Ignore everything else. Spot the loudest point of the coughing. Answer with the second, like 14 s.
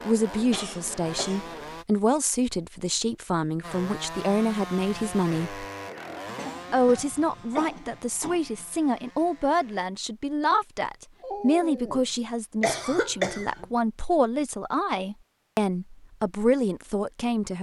13 s.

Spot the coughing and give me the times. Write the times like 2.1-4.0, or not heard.
0.3-1.8, 6.0-8.7, 12.6-13.7.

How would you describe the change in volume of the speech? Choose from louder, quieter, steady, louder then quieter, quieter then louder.
steady.